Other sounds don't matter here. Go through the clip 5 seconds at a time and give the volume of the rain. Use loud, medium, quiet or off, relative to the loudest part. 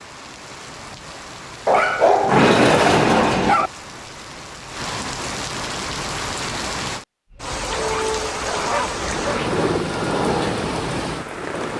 medium, loud, loud.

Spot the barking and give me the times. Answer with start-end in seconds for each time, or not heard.
1.6-3.7, 7.7-9.6.